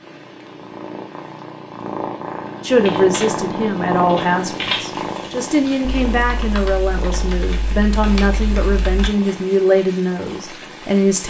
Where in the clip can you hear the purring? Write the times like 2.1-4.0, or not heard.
0.0-11.2.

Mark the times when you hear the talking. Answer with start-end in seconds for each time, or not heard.
2.6-11.2.